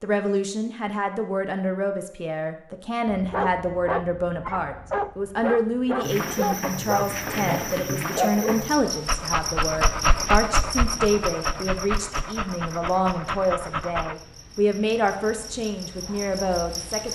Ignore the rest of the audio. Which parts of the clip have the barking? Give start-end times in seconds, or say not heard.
3.0-14.2.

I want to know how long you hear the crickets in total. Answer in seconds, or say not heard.
11 s.